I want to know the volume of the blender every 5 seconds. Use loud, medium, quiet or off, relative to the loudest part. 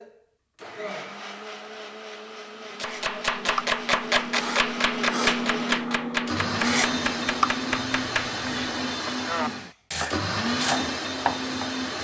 medium, loud, loud.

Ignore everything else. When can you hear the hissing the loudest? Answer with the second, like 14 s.
7 s.